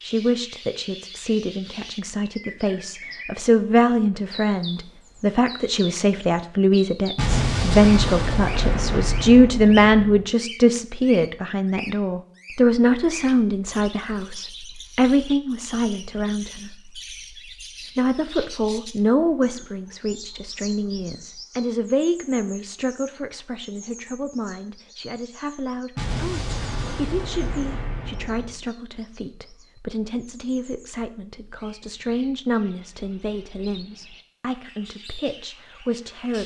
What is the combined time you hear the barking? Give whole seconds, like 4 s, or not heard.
not heard.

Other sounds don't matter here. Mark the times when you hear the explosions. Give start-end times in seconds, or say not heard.
7.2-10.2, 25.9-28.6.